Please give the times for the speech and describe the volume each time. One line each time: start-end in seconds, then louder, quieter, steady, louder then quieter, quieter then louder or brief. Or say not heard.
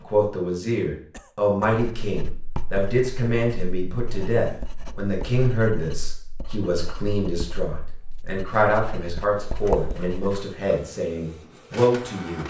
0.0-12.4 steady.